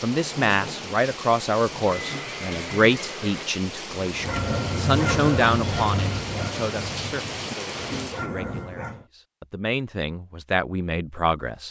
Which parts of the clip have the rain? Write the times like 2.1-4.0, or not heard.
0.0-8.2.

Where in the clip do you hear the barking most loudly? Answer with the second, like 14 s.
5 s.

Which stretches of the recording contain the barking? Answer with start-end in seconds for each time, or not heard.
4.0-9.1.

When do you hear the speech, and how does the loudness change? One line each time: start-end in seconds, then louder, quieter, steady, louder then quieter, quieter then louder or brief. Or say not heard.
0.0-11.6 quieter then louder.